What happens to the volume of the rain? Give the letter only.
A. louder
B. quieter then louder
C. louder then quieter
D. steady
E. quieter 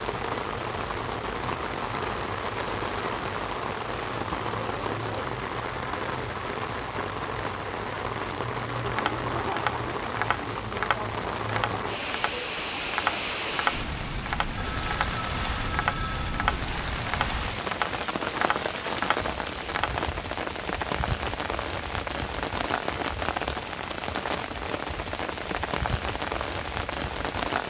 D.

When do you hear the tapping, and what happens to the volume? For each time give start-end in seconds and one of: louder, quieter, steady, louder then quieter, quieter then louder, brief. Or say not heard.
8.7-19.9 steady.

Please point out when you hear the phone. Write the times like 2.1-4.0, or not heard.
5.8-6.7, 14.6-16.6.